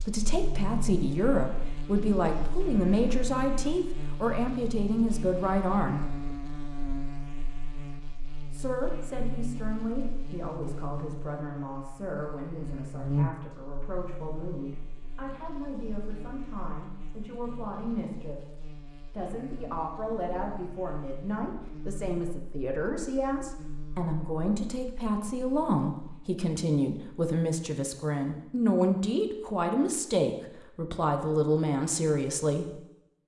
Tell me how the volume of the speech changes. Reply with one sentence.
The loudness of the speech goes down, then up.